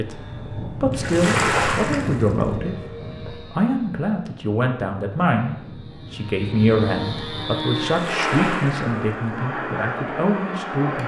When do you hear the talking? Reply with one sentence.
The talking can be heard from 0.0 to 11.0 s.